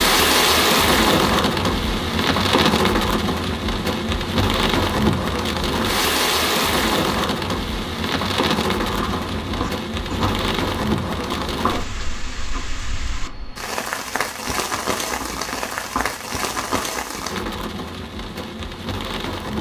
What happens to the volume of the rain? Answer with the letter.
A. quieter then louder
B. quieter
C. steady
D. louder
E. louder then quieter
B.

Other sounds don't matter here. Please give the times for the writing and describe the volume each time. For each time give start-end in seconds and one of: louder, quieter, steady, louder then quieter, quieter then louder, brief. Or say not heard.
8.8-16.9 quieter then louder.